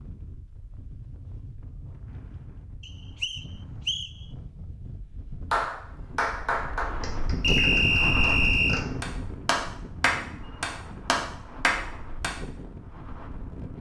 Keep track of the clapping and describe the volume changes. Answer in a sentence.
The loudness of the clapping goes down, then up.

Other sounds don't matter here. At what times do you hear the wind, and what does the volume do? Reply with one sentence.
You can hear the wind from 0.0 to 13.7 s, getting louder then quieter.